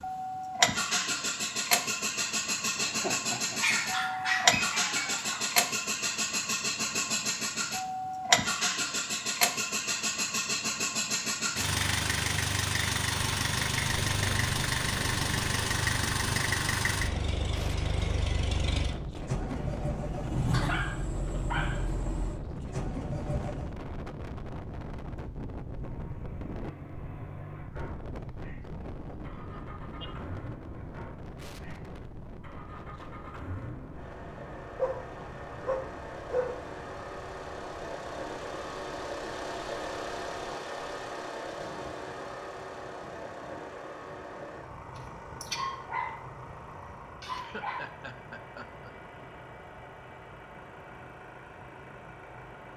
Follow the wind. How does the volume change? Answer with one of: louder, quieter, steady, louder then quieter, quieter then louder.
quieter.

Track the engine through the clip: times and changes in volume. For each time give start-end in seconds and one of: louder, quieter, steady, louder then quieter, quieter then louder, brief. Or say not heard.
0.0-23.8 quieter
25.8-52.7 louder then quieter.